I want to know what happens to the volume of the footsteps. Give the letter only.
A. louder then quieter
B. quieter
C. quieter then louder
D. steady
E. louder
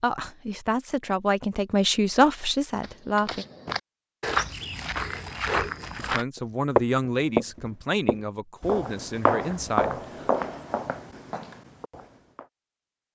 A.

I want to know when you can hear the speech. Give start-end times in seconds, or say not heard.
0.0-3.5, 6.0-10.0.